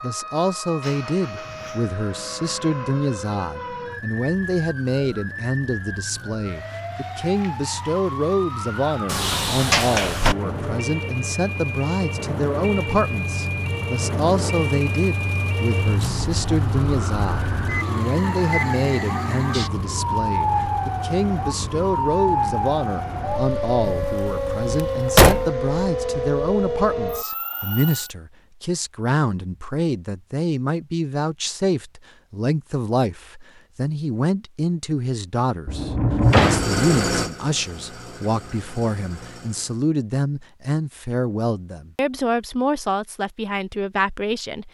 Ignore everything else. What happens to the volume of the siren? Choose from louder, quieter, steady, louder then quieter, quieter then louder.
louder.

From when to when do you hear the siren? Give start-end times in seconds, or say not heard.
0.0-28.1.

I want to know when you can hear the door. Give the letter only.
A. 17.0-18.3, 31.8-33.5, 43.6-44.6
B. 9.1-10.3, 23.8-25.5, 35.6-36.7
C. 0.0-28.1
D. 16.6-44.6
B.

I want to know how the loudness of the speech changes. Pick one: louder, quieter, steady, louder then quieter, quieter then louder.
steady.